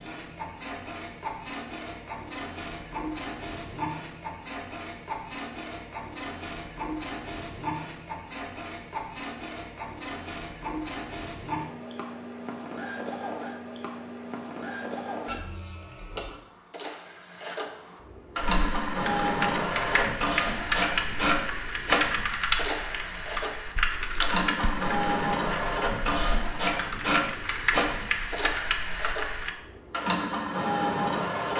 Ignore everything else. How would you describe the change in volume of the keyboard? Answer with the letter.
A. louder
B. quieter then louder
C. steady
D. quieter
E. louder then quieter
B.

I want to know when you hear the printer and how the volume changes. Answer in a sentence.
The printer can be heard from 0.0 to 31.5 s, getting louder.